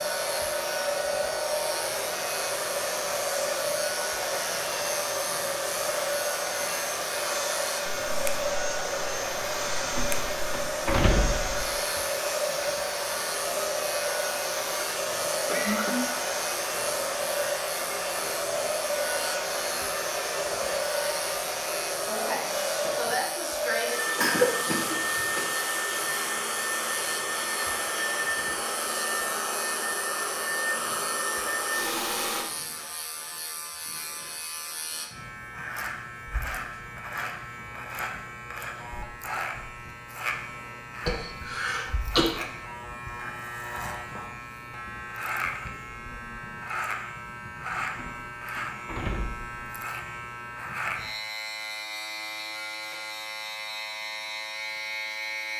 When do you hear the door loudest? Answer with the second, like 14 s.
11 s.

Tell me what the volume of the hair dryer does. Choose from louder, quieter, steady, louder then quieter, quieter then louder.
steady.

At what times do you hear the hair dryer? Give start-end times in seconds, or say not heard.
0.0-32.5.